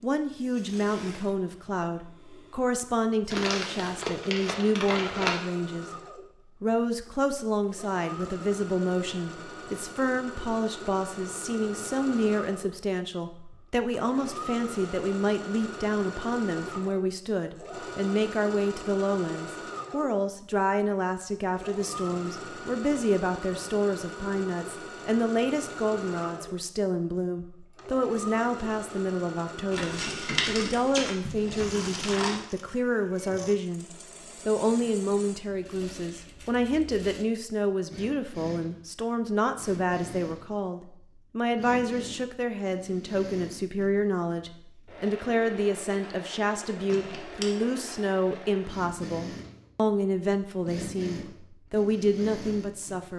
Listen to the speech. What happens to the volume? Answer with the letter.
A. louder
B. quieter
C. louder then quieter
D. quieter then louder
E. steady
E.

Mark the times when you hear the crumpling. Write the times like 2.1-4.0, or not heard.
3.3-5.3, 29.7-32.5, 46.9-47.5.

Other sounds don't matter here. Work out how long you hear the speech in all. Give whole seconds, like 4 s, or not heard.
52 s.